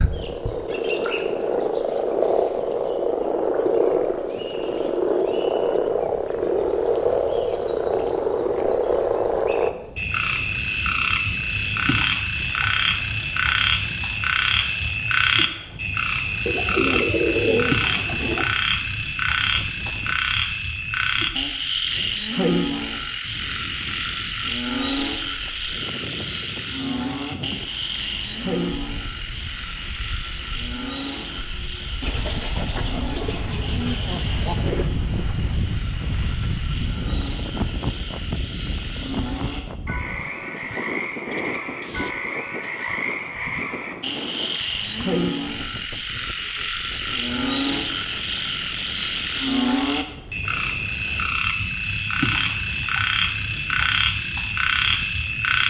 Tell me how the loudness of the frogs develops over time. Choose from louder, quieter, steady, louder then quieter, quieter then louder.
quieter then louder.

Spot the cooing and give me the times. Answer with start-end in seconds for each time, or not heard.
16.4-18.4, 32.0-34.9.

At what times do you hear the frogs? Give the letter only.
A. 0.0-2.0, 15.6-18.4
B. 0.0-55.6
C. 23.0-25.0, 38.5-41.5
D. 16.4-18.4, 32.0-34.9
B.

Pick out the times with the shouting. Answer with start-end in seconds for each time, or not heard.
not heard.